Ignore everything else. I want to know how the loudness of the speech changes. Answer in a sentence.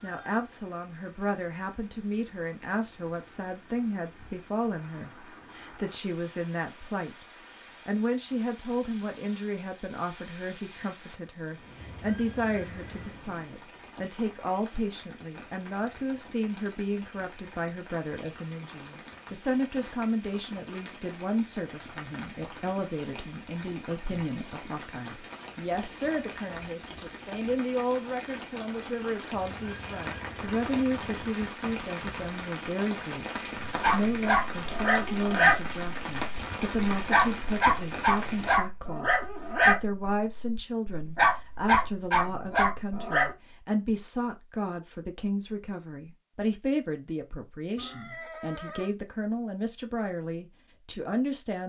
The loudness of the speech stays about the same.